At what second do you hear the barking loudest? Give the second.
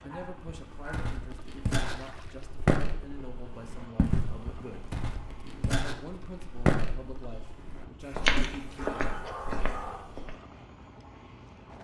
9 s.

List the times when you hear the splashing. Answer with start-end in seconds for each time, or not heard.
1.8-2.5, 8.3-8.9.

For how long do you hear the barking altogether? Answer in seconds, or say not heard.
3 s.